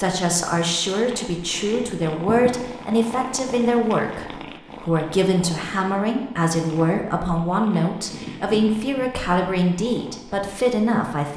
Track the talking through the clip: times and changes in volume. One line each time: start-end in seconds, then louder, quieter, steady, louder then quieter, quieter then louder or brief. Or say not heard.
0.0-11.3 steady.